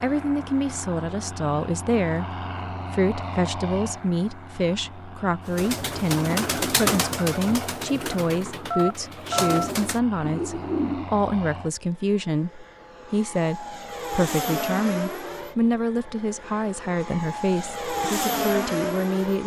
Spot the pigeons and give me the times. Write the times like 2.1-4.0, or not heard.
5.5-11.1.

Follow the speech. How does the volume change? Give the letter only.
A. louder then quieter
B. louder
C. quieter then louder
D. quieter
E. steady
E.